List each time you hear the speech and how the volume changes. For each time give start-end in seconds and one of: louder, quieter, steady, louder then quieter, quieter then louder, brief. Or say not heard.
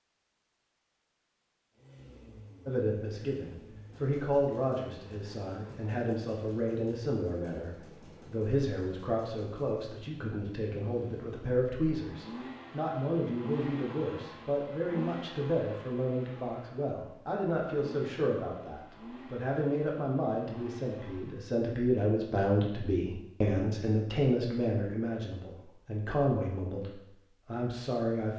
2.6-28.3 steady.